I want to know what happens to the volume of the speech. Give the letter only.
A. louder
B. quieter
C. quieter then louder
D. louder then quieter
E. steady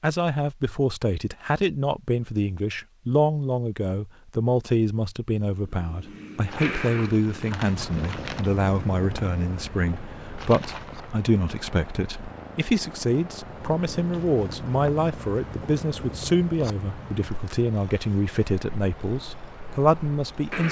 E.